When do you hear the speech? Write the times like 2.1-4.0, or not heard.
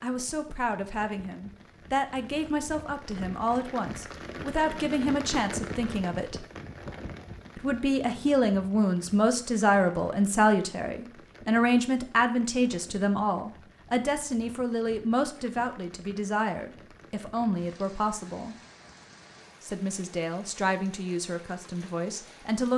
0.0-6.5, 7.5-18.6, 19.6-22.7.